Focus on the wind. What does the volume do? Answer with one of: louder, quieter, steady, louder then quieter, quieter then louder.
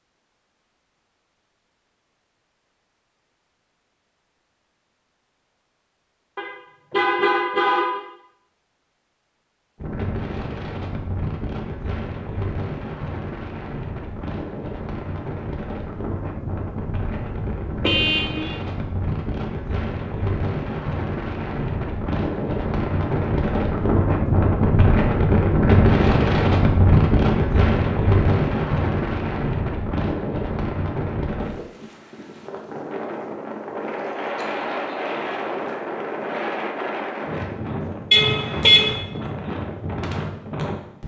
louder then quieter.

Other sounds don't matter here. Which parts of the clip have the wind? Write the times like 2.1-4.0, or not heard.
9.8-41.0.